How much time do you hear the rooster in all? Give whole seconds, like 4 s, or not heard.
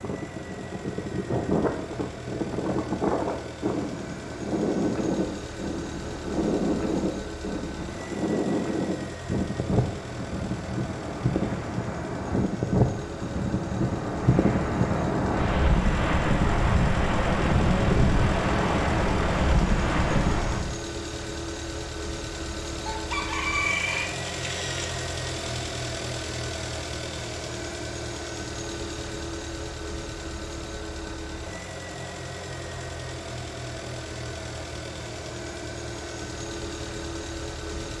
2 s.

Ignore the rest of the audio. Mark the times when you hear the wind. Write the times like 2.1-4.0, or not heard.
0.0-20.8.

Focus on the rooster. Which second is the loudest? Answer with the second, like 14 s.
24 s.